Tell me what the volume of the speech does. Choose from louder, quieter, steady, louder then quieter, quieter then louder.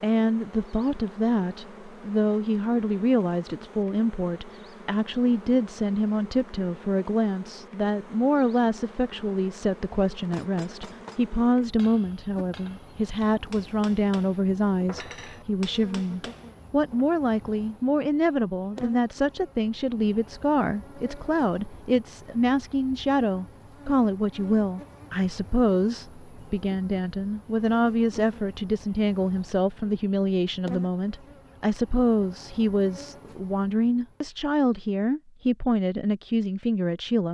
steady.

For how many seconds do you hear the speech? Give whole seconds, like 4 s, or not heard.
37 s.